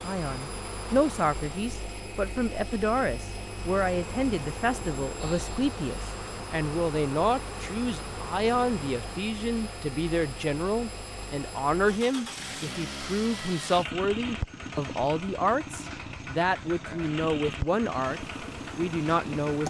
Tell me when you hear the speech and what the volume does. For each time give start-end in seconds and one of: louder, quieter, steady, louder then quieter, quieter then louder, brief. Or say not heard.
0.0-19.6 steady.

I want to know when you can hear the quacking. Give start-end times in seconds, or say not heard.
not heard.